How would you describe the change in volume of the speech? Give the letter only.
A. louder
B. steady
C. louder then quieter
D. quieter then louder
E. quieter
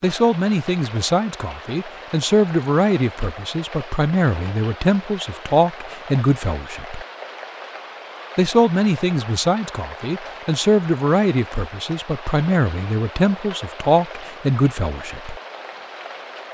B.